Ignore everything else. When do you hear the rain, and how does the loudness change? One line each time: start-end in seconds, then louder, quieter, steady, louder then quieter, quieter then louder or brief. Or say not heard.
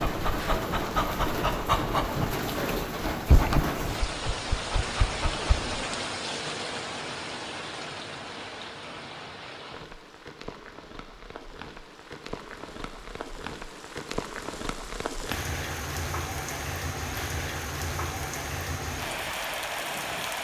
0.0-20.3 quieter then louder.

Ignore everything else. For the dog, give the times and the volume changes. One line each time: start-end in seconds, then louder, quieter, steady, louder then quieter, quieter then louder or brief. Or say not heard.
0.0-5.8 quieter.